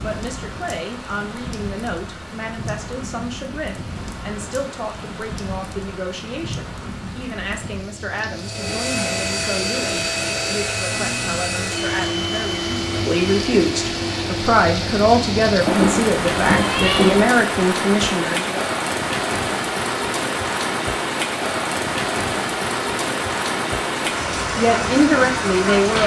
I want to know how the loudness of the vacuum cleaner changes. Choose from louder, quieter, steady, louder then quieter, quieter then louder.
steady.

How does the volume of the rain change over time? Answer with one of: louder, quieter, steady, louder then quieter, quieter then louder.
louder.